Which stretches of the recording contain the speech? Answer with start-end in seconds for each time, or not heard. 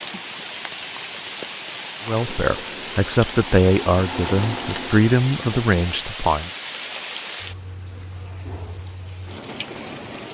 2.0-6.5.